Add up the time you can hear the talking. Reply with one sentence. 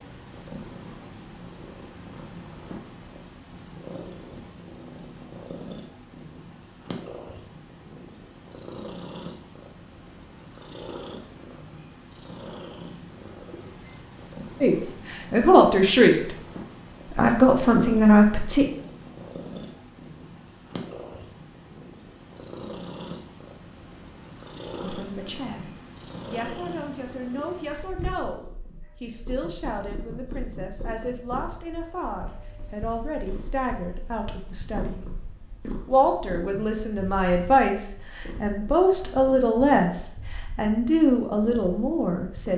The talking can be heard for 20 seconds in total.